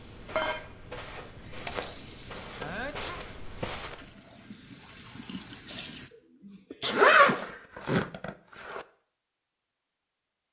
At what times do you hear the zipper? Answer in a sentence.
The zipper can be heard from 6.8 to 8.8 s.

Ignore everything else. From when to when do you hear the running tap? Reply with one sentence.
You can hear the running tap from 0.0 to 6.1 s.